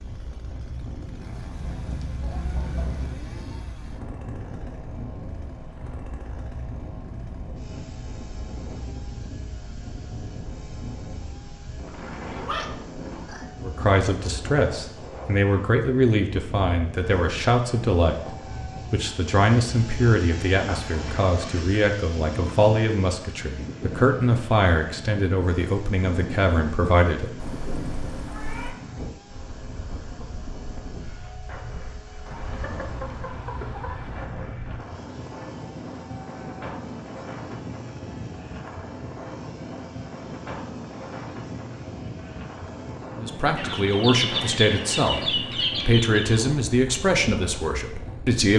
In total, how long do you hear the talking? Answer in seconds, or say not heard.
19 s.